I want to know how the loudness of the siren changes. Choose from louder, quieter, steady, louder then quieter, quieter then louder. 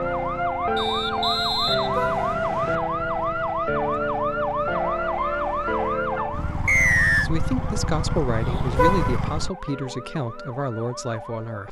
quieter.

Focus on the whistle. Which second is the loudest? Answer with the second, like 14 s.
7 s.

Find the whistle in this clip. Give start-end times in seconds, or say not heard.
0.8-2.8, 6.7-7.3.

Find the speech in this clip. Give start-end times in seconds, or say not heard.
7.2-11.6.